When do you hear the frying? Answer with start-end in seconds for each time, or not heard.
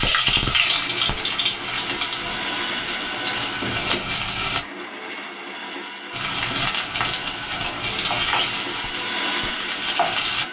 0.0-4.6, 6.1-10.4.